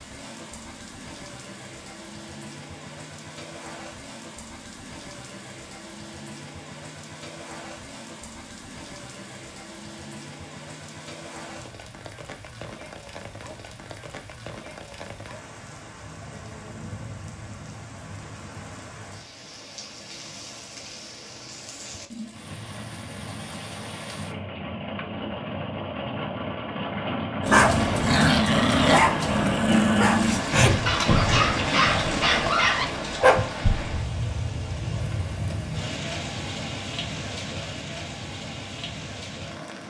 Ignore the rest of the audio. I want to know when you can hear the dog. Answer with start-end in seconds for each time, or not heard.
27.4-33.5.